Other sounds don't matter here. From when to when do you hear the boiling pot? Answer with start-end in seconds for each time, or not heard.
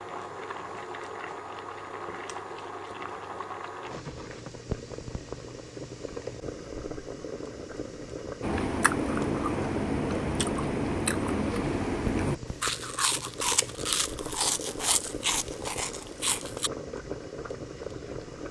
0.0-18.4.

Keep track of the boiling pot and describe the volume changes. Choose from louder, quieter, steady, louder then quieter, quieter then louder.
steady.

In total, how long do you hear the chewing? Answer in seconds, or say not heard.
8 s.